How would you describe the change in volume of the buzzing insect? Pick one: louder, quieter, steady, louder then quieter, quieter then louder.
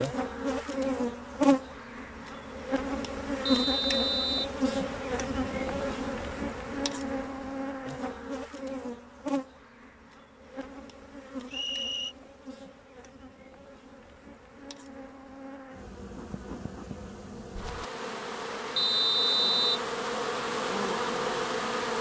quieter then louder.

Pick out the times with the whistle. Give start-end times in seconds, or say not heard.
3.5-4.5, 11.4-12.2, 18.8-19.9.